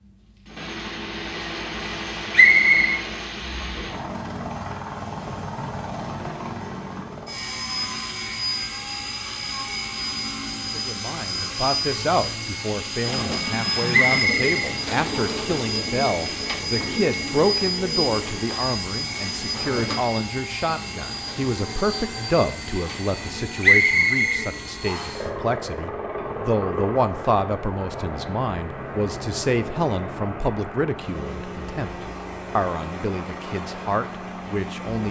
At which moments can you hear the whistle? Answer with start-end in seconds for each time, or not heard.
2.3-3.0, 13.9-15.5, 23.6-25.2.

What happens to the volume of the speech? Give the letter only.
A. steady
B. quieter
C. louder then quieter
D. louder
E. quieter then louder
A.